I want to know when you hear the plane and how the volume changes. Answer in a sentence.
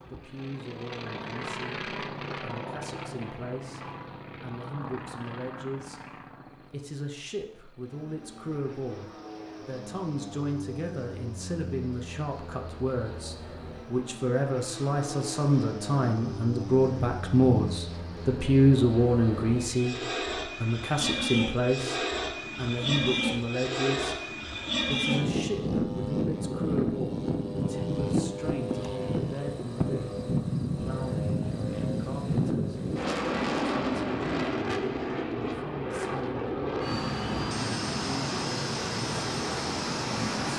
You can hear the plane from 0.0 to 40.5 s, getting louder.